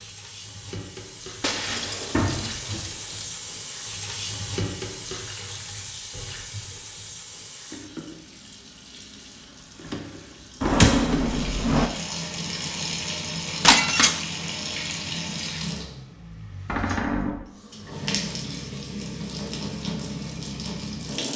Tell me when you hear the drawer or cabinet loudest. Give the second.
11 s.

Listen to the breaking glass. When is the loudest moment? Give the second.
14 s.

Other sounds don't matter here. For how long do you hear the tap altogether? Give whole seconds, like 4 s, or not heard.
21 s.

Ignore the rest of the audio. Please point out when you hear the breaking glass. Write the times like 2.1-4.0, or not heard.
1.4-3.4, 13.6-14.3.